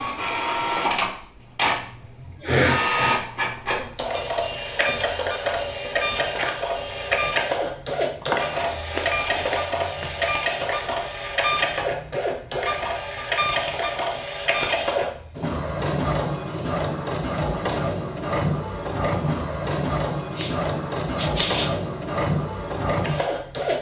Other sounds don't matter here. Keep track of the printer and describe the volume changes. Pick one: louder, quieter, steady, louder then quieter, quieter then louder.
steady.